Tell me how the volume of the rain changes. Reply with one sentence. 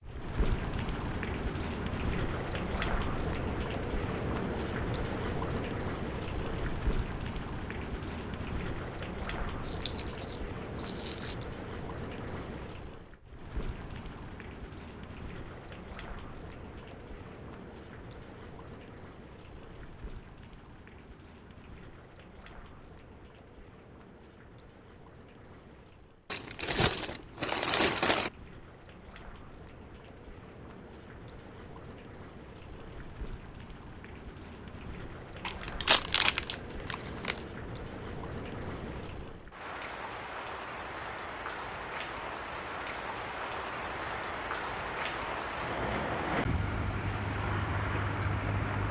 The volume of the rain goes down, then up.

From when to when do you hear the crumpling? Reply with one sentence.
The crumpling can be heard from 9.6 to 11.3 s, from 26.3 to 28.3 s and from 35.5 to 37.4 s.